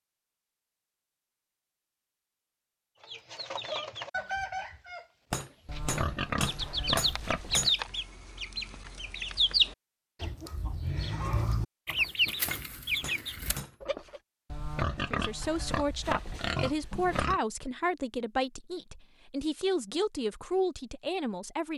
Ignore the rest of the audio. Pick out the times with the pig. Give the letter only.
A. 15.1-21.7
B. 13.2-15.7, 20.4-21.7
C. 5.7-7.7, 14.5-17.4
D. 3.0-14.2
C.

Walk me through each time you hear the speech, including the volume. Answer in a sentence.
The speech can be heard from 15.1 to 21.7 s, at a steady volume.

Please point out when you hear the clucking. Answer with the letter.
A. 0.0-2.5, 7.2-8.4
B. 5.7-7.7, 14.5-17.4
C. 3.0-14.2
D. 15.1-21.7
C.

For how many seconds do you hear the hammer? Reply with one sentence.
The hammer can be heard for 4 seconds in total.